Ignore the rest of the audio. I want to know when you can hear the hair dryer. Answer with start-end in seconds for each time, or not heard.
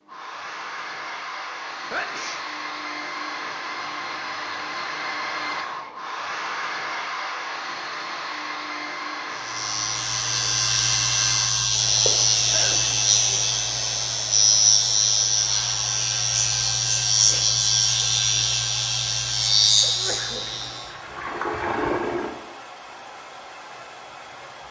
0.0-24.6.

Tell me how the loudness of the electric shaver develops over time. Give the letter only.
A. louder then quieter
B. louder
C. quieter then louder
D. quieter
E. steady
E.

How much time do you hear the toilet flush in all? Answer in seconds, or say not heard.
2 s.